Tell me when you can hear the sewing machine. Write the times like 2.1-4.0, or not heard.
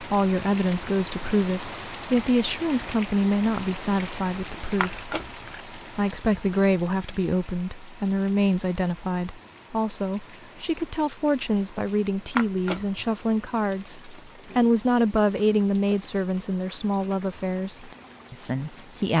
not heard.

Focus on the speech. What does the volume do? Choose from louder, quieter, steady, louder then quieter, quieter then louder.
steady.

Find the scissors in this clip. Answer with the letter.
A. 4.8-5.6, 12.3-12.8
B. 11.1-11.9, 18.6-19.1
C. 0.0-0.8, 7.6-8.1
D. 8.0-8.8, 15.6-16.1
A.